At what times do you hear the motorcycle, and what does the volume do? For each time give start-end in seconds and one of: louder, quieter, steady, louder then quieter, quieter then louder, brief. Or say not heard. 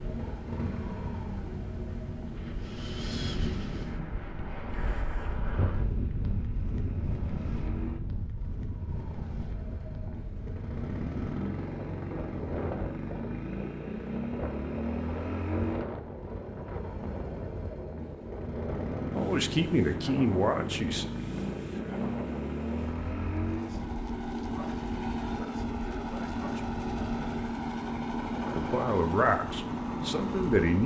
0.0-30.8 louder.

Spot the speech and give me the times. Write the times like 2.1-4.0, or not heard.
19.1-21.1, 25.2-26.8, 28.6-30.8.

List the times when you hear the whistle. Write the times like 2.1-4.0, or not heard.
not heard.